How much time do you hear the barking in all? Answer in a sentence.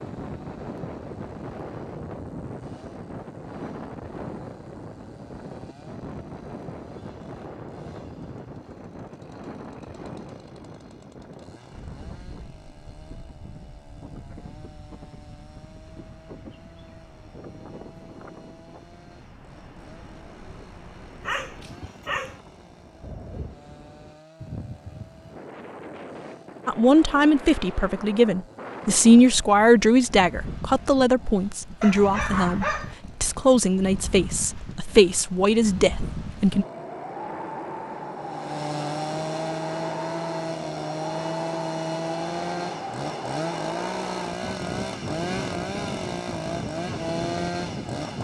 You can hear the barking for 2 seconds altogether.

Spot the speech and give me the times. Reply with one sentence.
The speech can be heard from 26.6 to 36.6 s.